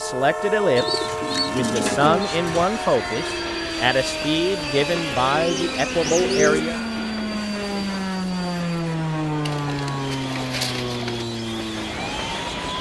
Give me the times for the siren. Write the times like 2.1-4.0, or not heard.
0.0-12.7.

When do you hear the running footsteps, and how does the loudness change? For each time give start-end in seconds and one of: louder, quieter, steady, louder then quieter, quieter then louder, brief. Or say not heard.
not heard.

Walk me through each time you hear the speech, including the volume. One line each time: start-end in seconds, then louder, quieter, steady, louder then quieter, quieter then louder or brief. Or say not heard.
0.0-6.8 steady.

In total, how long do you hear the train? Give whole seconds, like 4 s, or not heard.
13 s.